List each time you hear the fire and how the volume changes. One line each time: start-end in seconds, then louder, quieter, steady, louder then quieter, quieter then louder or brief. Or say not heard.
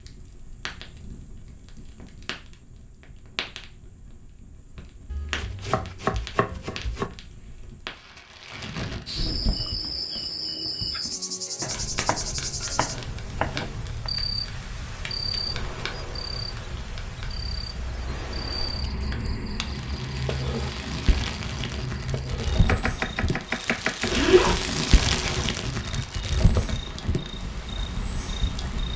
0.0-28.9 louder.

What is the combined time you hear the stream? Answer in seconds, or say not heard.
not heard.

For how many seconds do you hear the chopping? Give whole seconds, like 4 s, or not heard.
6 s.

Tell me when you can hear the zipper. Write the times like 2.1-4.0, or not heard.
24.0-25.5.